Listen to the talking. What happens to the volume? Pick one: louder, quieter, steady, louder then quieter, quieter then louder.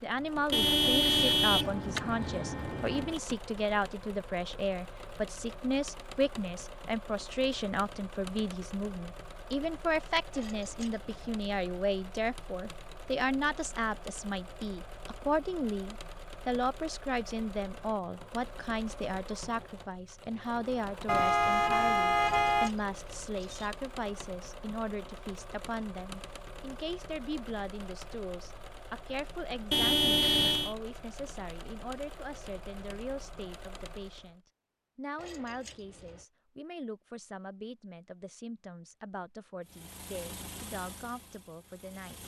quieter.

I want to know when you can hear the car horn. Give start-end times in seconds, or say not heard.
0.5-3.2, 21.1-22.7, 29.7-30.8.